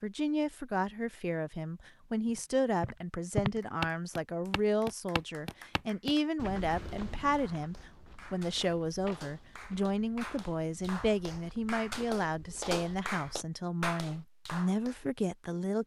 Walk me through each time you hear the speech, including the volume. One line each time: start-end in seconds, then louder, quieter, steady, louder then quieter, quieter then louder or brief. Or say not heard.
0.0-15.8 steady.